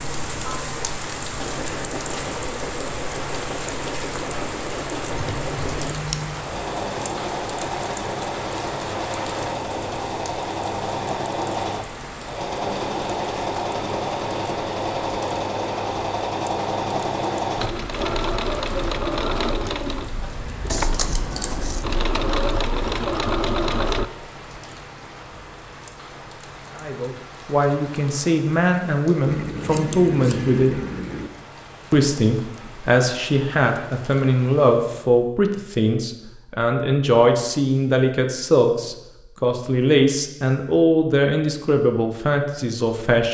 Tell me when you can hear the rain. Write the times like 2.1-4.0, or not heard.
0.0-35.0.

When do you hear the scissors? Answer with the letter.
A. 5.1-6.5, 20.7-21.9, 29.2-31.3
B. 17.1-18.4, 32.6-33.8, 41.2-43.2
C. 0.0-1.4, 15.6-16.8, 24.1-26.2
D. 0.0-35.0
A.